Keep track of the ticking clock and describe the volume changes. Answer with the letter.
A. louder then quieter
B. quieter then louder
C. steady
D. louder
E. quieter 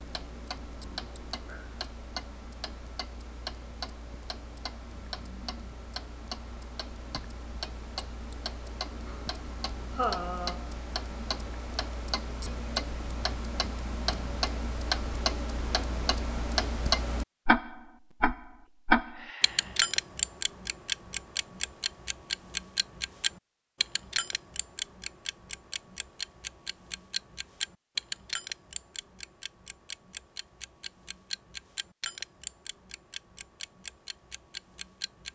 A.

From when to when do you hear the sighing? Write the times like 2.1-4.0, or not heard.
9.9-10.7, 19.0-19.9.